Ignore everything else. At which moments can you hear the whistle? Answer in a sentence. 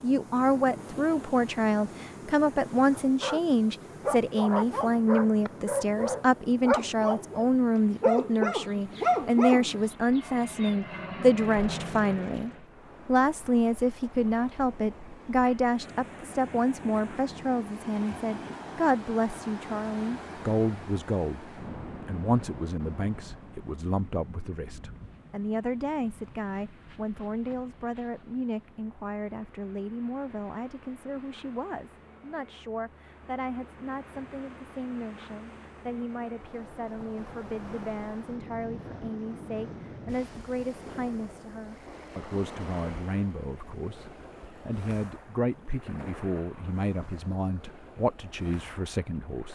You can't hear the whistle here.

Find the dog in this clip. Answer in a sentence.
The dog can be heard from 2.9 to 10.8 s.